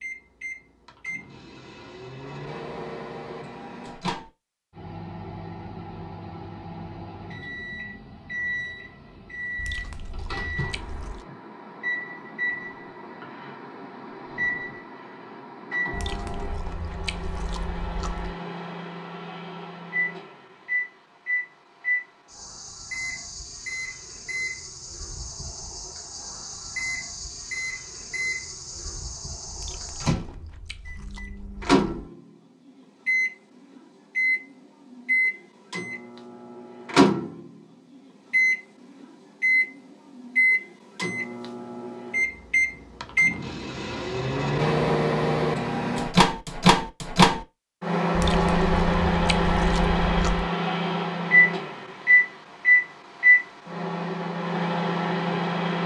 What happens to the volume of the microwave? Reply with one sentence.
The volume of the microwave goes up.